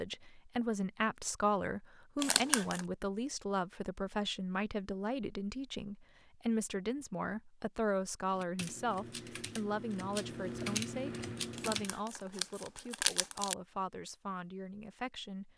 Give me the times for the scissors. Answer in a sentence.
The scissors can be heard from 2.2 to 2.8 s and from 11.6 to 13.6 s.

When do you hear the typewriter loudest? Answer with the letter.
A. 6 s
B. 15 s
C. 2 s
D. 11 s
D.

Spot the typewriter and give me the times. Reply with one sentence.
You can hear the typewriter from 8.3 to 12.0 s.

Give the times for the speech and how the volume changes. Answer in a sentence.
The speech can be heard from 0.0 to 15.5 s, getting quieter.